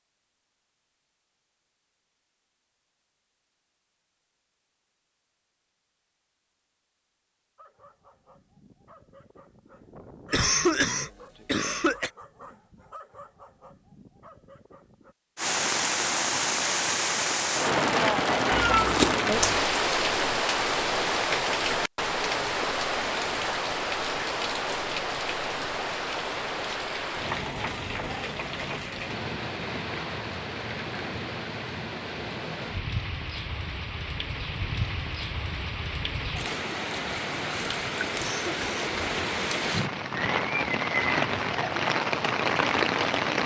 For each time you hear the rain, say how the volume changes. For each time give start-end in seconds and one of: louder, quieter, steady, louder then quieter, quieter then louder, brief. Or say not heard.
15.3-43.4 quieter then louder.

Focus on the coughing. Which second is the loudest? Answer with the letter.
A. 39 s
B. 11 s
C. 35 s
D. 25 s
B.